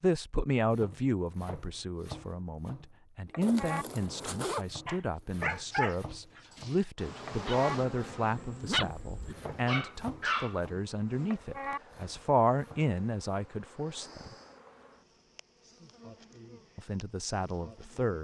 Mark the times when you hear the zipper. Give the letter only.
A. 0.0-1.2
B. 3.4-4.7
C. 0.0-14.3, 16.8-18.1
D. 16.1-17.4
B.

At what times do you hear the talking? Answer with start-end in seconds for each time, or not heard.
0.0-14.3, 16.8-18.1.